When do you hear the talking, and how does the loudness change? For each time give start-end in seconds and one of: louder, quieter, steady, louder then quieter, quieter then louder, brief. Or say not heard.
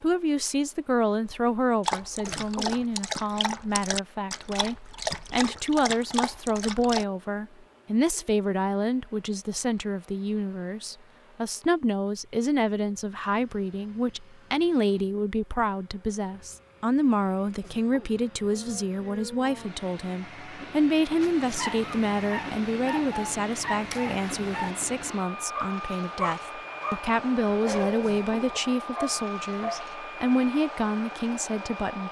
0.0-32.0 steady.